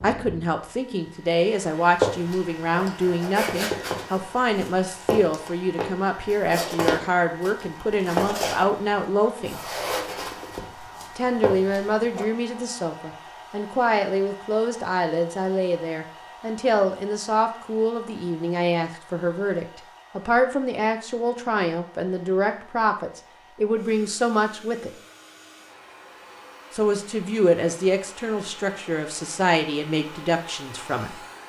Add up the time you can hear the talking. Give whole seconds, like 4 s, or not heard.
28 s.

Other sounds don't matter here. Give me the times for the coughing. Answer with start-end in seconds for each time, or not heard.
not heard.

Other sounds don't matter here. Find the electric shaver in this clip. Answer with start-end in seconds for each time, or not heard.
not heard.